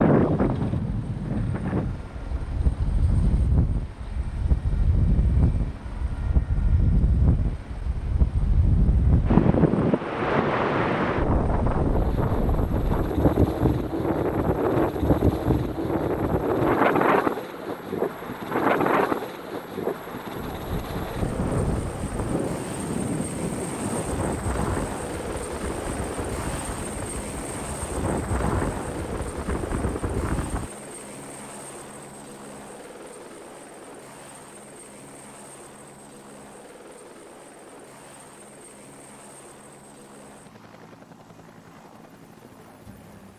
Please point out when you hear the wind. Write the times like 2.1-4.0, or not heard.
0.0-30.7.